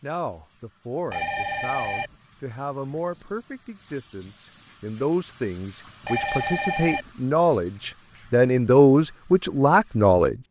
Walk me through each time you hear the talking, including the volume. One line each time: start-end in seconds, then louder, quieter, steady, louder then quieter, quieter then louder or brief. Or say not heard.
0.0-10.4 louder.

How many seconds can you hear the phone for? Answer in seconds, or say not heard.
2 s.